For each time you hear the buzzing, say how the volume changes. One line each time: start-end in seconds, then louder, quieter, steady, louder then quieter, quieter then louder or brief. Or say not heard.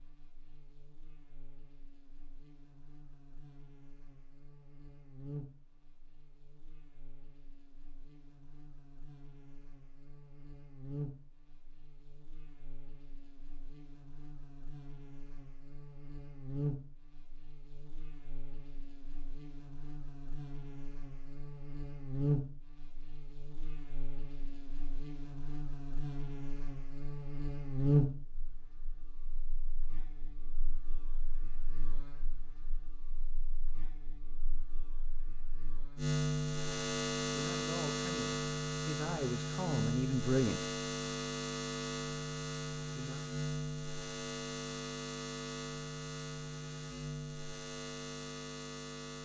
0.0-49.2 louder.